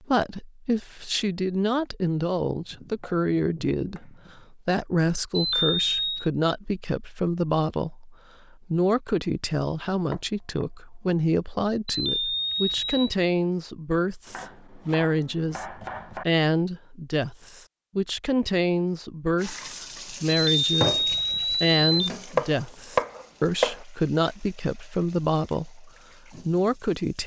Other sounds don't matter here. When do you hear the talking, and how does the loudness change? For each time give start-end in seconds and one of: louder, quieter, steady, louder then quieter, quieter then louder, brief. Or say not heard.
0.1-27.2 steady.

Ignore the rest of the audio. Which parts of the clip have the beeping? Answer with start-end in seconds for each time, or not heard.
5.3-6.3, 11.8-13.1, 20.5-22.1.